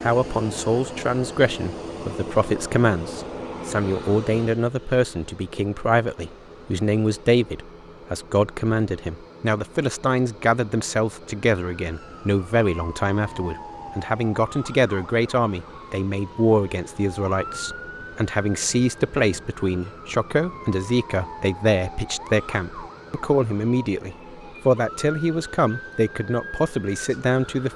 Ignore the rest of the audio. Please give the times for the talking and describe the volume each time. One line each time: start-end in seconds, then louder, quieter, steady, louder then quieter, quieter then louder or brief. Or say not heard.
0.0-27.7 steady.